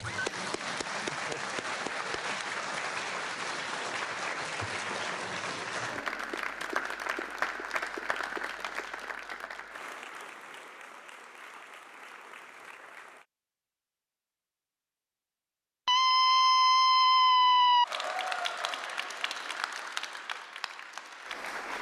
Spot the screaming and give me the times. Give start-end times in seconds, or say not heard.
0.0-0.4, 15.8-17.9.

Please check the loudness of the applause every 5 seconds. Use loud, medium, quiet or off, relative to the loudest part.
loud, loud, quiet, loud, medium.